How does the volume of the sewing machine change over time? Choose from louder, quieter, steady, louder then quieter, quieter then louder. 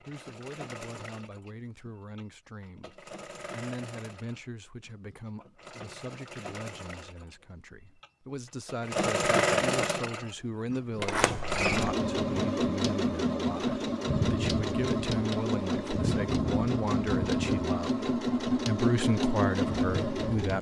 louder.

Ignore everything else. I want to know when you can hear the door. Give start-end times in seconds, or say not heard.
10.9-11.9.